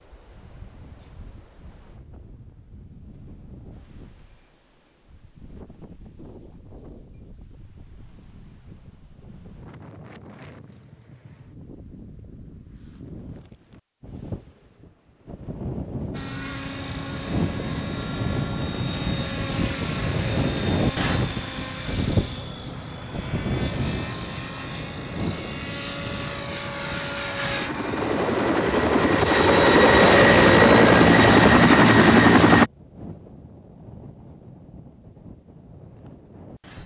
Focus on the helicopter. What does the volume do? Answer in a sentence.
The volume of the helicopter goes up.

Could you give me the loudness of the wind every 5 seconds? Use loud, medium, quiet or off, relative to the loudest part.
quiet, quiet, quiet, loud, loud, medium, quiet, quiet.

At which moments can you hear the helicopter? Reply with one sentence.
You can hear the helicopter from 16.1 to 32.7 s.